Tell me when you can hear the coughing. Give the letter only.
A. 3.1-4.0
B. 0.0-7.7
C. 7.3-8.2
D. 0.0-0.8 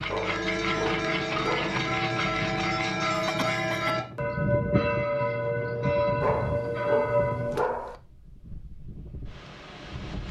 A.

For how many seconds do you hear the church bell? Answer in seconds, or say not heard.
8 s.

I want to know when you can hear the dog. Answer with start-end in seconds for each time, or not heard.
0.1-1.9, 6.2-8.0.